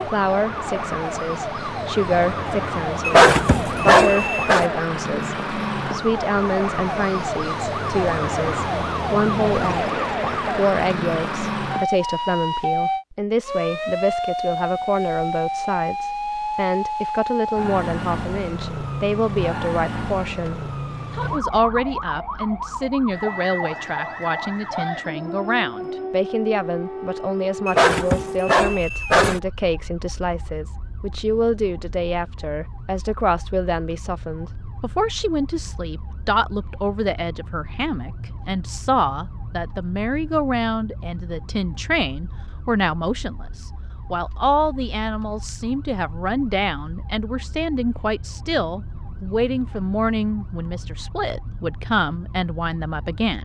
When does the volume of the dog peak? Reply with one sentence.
The loudest moment of the dog is at 3 seconds.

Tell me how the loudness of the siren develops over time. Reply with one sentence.
The volume of the siren goes down.